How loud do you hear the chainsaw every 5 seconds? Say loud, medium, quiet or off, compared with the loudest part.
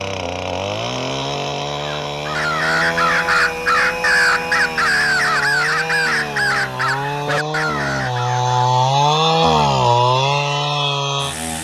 medium, loud, loud.